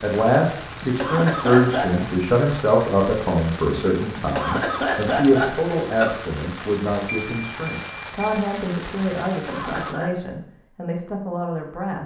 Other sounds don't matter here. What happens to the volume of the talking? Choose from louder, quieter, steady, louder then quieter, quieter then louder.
quieter.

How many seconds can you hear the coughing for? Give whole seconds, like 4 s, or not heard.
4 s.